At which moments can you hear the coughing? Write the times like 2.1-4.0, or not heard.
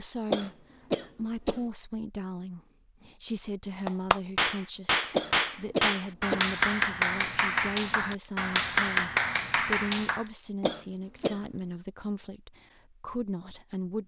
0.3-1.6, 5.1-6.5, 10.6-11.4.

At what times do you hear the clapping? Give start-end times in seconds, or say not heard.
3.9-10.2.